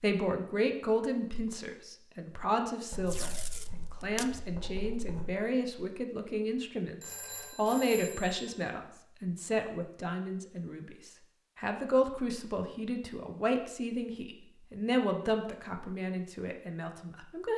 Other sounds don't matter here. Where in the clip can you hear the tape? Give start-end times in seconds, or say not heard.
3.0-4.3.